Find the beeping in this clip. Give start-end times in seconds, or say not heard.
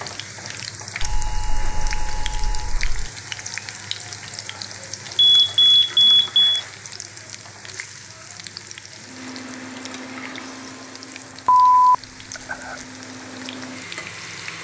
1.0-3.1, 5.2-6.5, 11.4-12.8.